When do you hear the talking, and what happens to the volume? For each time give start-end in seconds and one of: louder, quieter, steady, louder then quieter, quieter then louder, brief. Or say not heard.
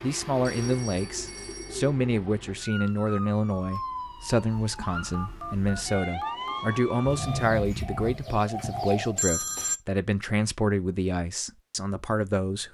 0.0-12.7 steady.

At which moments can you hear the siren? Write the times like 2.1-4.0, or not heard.
2.6-7.5.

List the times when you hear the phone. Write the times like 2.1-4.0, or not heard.
0.4-1.9, 5.1-6.7, 9.2-9.8.